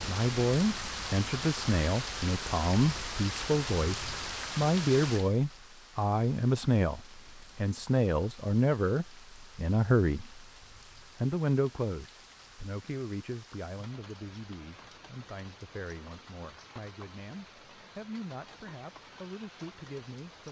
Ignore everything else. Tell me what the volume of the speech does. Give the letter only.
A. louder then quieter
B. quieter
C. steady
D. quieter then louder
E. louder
B.